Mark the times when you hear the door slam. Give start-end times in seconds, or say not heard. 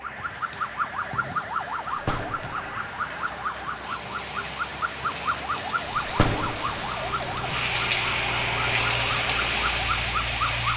1.9-2.6, 6.0-6.7.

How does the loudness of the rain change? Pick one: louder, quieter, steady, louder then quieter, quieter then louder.
louder.